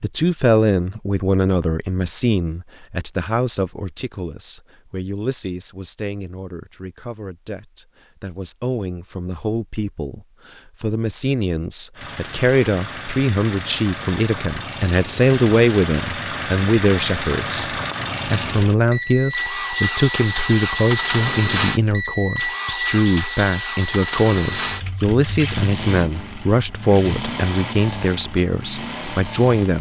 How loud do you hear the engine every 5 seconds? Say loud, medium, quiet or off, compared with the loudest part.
off, off, medium, loud, loud, medium.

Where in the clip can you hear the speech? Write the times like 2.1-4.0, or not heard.
0.0-29.7.